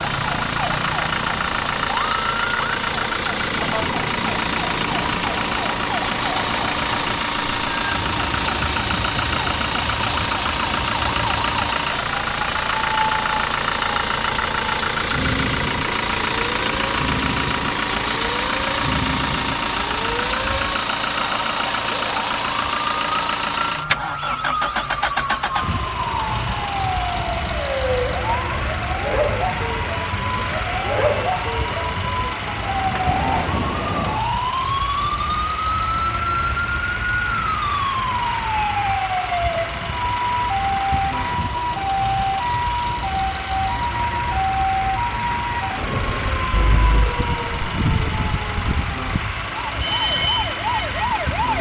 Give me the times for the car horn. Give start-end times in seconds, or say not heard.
46.5-47.1.